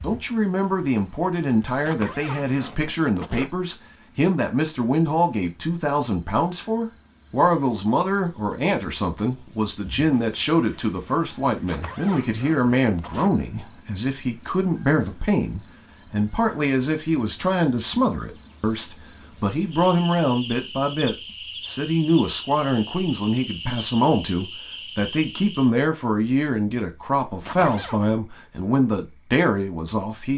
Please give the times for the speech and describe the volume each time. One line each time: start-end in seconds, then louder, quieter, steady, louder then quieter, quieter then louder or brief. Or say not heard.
0.0-30.3 steady.